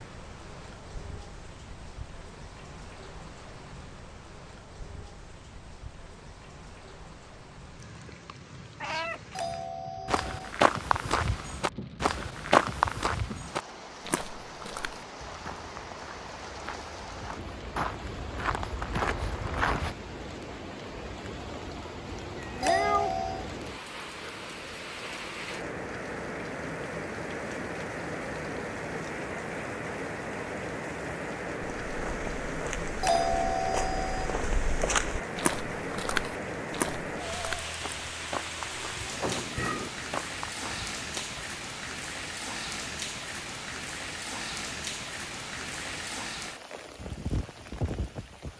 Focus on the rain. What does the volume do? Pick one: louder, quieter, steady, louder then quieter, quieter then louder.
louder.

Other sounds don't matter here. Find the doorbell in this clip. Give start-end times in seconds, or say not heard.
9.3-10.5, 22.6-23.4, 33.0-34.4.